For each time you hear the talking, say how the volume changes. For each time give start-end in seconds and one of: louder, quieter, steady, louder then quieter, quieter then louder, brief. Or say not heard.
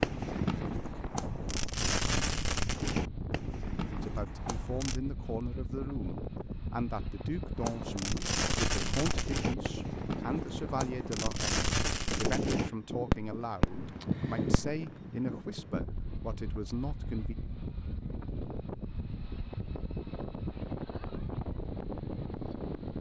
4.0-17.4 steady.